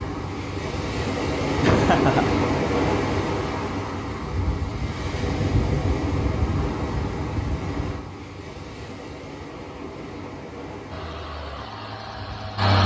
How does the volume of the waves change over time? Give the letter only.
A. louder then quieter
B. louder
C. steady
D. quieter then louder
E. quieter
E.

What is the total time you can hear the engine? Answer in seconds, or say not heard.
2 s.